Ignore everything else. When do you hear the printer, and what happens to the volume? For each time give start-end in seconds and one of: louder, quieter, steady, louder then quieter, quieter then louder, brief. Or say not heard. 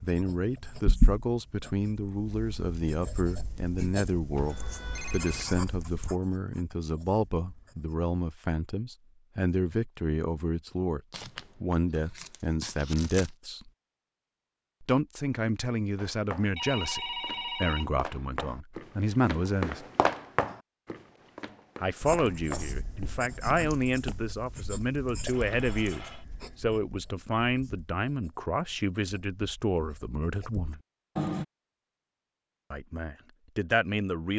not heard.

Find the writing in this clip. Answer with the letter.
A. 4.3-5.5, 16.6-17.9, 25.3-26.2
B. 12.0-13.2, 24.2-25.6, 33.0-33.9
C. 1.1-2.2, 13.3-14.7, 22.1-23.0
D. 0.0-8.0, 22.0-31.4
D.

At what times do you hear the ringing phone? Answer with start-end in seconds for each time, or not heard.
4.3-5.5, 16.6-17.9, 25.3-26.2.